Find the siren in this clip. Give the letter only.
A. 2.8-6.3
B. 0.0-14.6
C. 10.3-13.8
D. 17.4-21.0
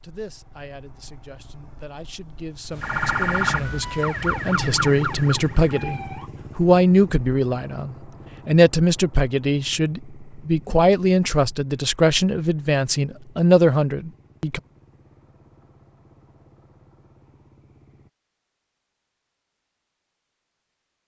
A.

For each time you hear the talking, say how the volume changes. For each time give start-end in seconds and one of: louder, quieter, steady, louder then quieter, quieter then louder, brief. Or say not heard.
0.0-14.6 louder.